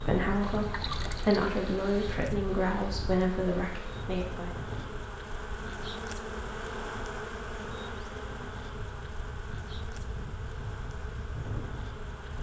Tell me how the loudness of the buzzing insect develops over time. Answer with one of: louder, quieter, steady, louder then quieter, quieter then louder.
louder then quieter.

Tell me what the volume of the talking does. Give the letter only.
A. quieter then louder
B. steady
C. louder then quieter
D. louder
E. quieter
C.